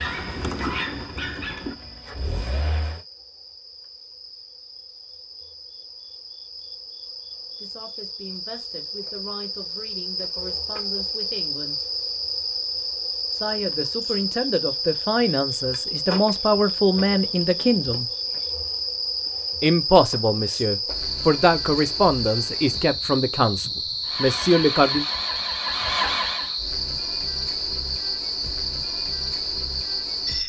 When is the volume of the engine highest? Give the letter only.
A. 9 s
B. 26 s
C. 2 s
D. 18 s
B.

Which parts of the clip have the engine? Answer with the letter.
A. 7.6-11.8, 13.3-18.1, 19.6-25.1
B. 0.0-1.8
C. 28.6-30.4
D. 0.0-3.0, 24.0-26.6
D.